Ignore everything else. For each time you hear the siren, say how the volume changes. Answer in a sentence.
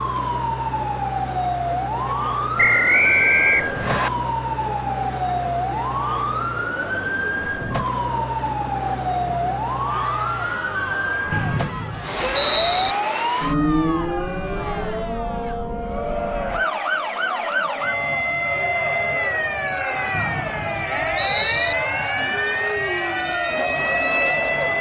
You can hear the siren from 0.0 to 24.7 s, at a steady volume.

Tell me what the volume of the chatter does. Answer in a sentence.
The volume of the chatter goes up.